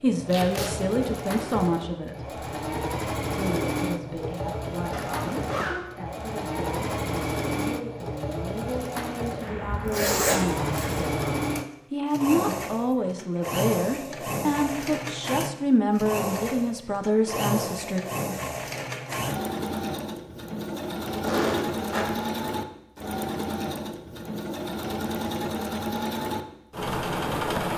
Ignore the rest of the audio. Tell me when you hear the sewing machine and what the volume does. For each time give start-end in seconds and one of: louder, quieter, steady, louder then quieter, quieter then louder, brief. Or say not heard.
0.0-27.7 steady.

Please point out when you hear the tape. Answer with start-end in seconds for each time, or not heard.
0.2-0.8.